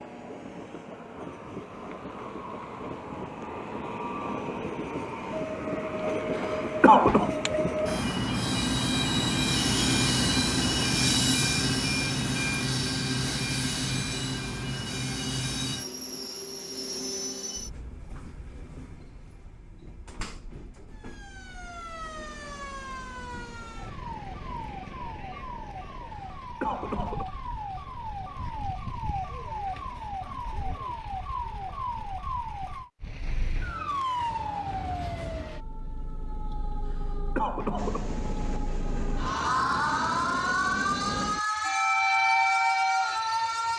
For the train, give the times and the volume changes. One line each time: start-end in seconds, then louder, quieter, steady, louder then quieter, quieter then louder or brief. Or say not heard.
0.0-24.8 louder then quieter
37.8-43.7 louder.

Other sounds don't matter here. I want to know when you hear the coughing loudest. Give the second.
7 s.